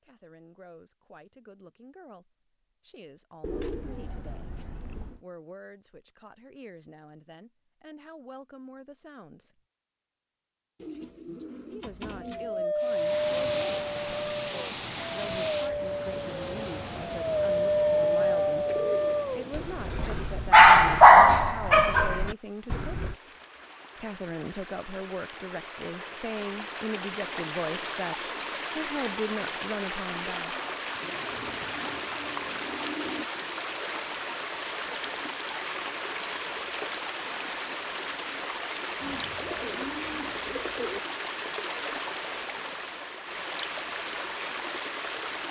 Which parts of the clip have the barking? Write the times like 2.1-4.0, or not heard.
12.2-23.1.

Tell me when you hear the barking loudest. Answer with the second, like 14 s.
21 s.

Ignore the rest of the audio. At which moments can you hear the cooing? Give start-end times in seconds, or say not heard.
3.4-5.2, 10.8-12.7, 18.6-20.2, 31.0-33.3, 39.0-41.0.